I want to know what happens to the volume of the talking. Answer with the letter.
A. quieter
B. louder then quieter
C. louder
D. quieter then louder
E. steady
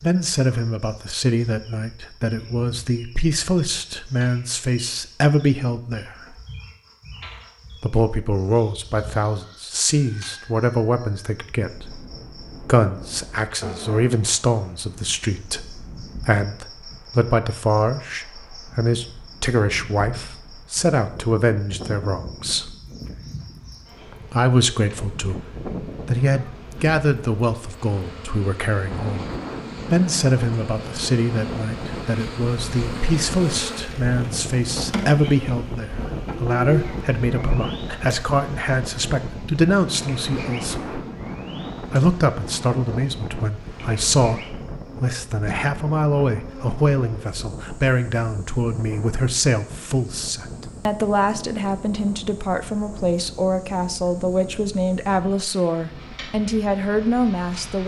E.